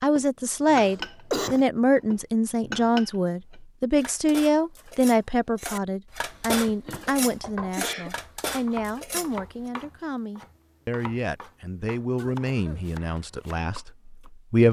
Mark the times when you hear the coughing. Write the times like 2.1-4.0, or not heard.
0.8-1.6, 6.3-8.2, 12.2-12.9.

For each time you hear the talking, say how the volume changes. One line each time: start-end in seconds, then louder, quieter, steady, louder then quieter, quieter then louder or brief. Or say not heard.
0.0-14.6 quieter.